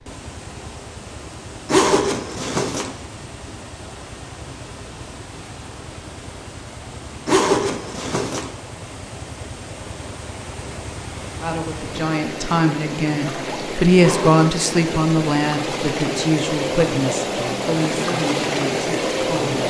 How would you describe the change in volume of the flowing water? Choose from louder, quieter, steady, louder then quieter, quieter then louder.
louder.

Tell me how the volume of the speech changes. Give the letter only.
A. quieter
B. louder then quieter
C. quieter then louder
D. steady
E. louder
B.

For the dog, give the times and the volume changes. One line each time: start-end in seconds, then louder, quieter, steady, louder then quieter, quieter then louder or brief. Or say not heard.
not heard.